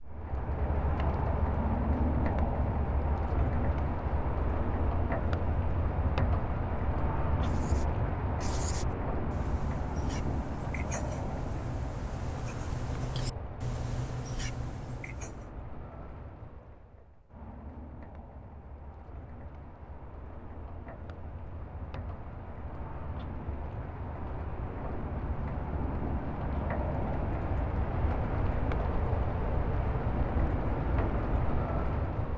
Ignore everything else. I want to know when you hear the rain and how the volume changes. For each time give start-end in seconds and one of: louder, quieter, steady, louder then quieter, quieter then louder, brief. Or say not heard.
0.0-32.3 quieter then louder.